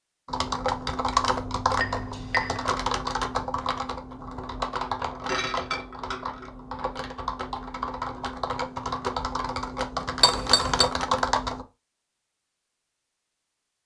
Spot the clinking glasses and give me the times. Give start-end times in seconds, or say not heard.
1.7-2.7, 4.8-6.5, 10.2-10.9.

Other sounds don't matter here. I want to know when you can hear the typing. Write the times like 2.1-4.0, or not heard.
0.2-11.7.